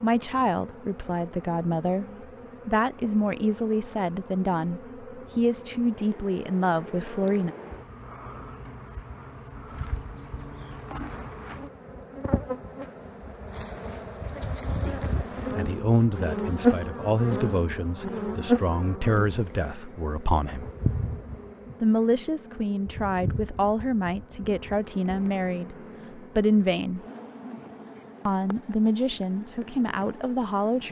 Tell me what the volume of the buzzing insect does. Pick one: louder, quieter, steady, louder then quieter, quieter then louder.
louder then quieter.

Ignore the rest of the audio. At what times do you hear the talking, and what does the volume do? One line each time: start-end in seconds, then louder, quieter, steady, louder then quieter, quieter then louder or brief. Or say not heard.
0.0-2.0 brief
2.6-7.5 steady
14.8-20.7 quieter
21.8-27.0 louder
28.2-30.8 brief.